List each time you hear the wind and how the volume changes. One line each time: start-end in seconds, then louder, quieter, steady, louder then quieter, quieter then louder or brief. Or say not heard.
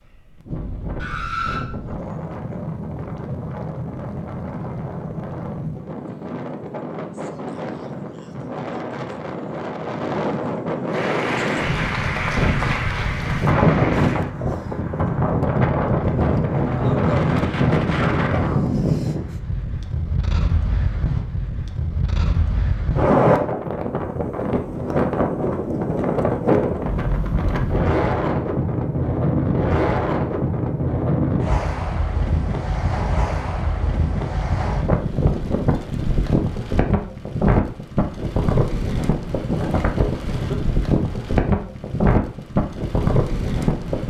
0.0-44.0 louder.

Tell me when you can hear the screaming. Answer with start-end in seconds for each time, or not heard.
0.9-1.6.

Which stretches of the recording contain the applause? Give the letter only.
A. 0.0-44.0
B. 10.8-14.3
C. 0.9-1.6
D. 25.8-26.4
B.